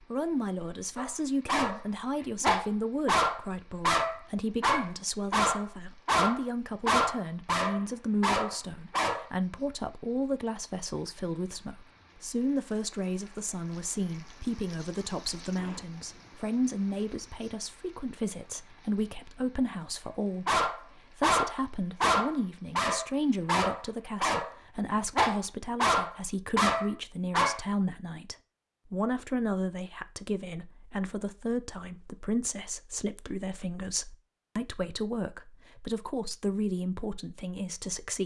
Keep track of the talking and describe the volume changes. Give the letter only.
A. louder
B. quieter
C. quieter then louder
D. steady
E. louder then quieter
D.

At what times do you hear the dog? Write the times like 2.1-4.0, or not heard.
0.9-9.3, 20.4-27.6.